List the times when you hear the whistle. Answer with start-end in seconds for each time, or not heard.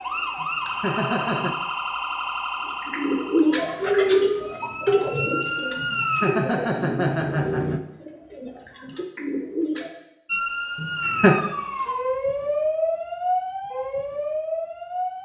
not heard.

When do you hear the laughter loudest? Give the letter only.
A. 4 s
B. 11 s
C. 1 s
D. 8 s
B.